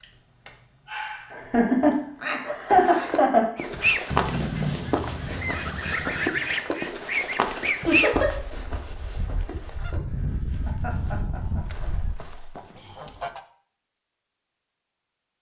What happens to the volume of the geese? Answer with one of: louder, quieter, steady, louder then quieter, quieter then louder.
quieter.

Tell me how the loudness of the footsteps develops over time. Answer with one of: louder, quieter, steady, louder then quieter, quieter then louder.
quieter.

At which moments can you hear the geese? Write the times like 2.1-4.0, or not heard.
3.5-13.4.